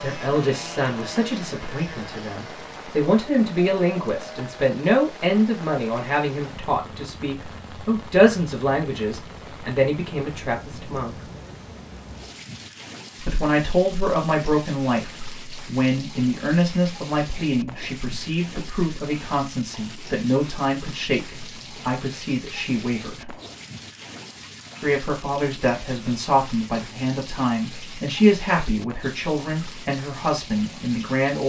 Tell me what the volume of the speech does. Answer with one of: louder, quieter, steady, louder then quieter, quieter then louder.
steady.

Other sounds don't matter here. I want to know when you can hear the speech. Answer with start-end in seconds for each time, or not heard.
0.0-11.2, 13.2-23.4, 24.8-31.4.